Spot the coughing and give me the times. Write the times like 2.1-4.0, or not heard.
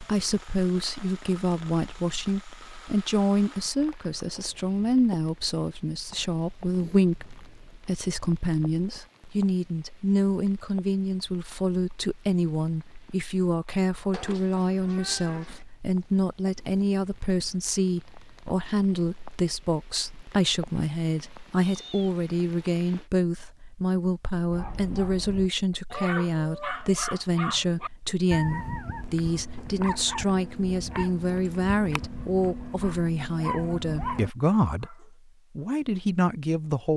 not heard.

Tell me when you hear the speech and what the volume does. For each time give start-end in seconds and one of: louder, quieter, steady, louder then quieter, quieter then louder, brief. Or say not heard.
0.0-36.9 steady.